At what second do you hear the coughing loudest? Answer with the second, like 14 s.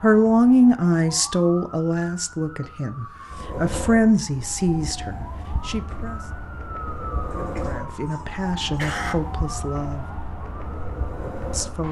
9 s.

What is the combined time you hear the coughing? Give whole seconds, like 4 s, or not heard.
3 s.